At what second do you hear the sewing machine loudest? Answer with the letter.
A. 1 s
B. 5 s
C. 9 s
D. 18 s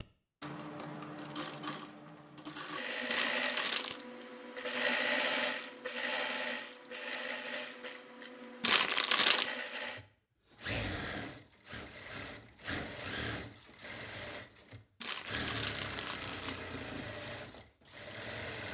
B.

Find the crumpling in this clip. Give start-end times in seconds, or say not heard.
3.0-4.0, 8.6-9.5, 15.0-16.6.